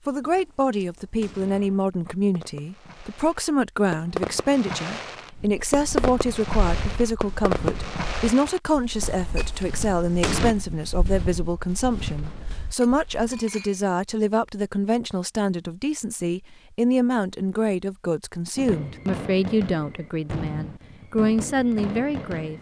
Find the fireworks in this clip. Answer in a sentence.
The fireworks can be heard from 0.2 to 10.6 s and from 18.6 to 22.5 s.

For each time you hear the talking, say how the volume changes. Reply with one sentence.
The talking can be heard from 0.1 to 22.5 s, at a steady volume.